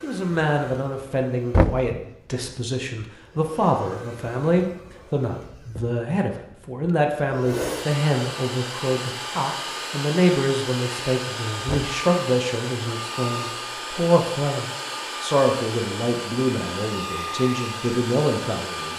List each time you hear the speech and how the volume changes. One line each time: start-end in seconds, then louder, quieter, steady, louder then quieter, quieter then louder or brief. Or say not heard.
0.0-18.9 steady.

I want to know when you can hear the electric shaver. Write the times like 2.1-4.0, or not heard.
not heard.